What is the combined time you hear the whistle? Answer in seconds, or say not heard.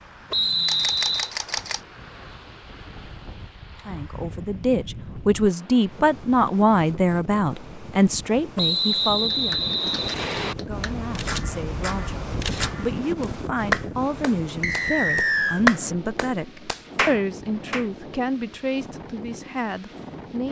4 s.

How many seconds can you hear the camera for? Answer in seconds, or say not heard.
3 s.